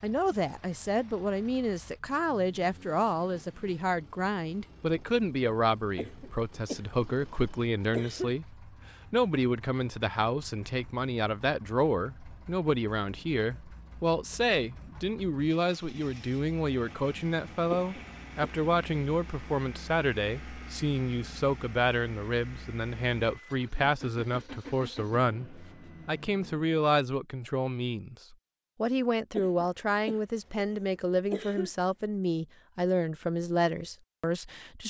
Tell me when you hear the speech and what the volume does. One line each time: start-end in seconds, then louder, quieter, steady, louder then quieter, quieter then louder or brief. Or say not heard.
0.0-34.8 steady.